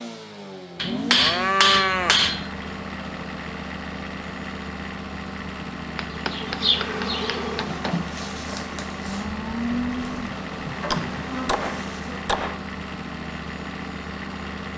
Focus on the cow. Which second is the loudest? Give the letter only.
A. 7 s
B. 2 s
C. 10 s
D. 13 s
B.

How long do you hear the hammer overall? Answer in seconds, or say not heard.
5 s.